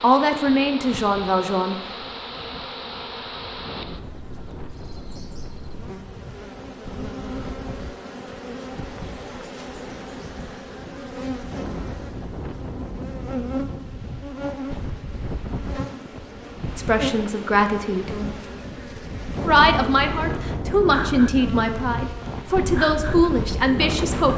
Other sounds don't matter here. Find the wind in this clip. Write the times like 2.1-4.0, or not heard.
0.2-24.3.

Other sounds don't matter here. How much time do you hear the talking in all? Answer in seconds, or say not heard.
8 s.